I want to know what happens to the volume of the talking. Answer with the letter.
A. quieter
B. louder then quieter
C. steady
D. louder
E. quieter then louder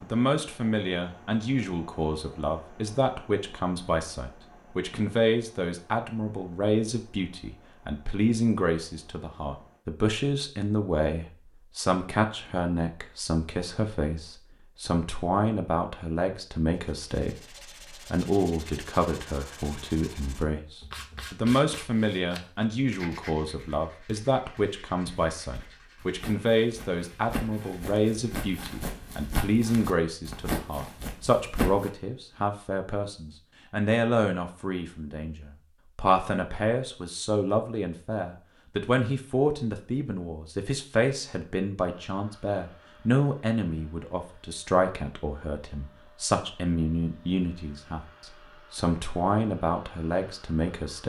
C.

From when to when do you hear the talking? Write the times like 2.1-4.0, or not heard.
0.0-51.0.